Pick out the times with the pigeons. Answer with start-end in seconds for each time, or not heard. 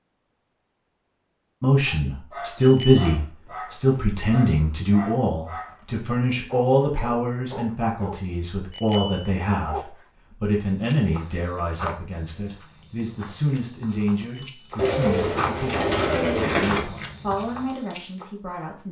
14.8-16.8.